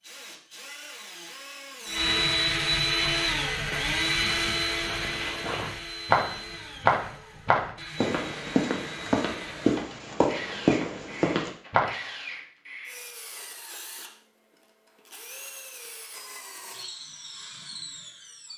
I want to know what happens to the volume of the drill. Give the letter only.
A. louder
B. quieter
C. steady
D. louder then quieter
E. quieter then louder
B.